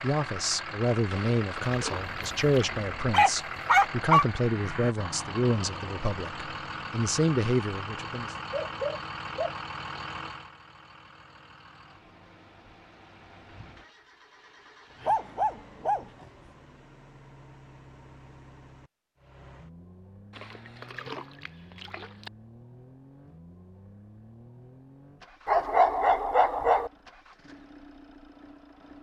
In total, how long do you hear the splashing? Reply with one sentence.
The splashing can be heard for 4 seconds in total.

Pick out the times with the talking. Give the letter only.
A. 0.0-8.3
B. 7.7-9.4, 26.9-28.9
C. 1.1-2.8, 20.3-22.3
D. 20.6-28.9
A.